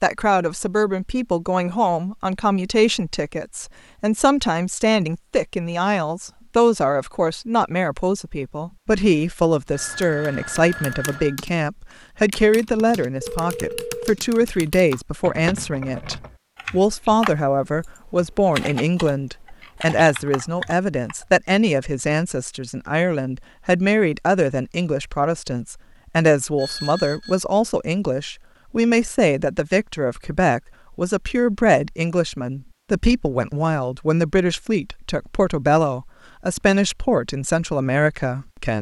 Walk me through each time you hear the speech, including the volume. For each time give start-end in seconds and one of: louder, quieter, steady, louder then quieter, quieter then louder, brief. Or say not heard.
0.0-38.7 steady.